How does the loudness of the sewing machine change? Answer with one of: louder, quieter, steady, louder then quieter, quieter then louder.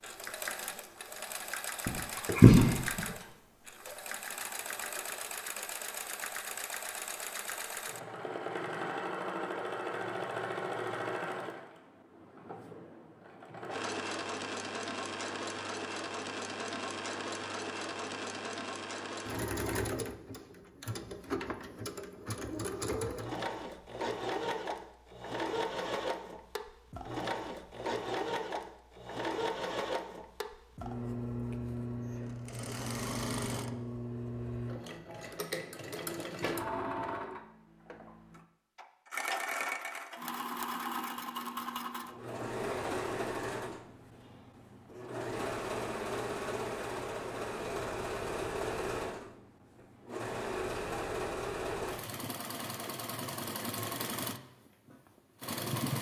steady.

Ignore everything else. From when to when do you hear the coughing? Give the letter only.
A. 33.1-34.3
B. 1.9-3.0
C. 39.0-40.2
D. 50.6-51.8
B.